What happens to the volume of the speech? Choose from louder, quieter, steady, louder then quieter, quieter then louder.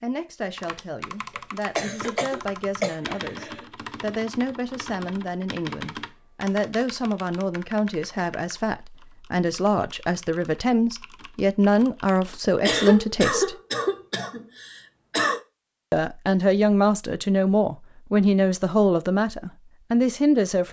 louder.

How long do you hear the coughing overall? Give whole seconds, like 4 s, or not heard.
5 s.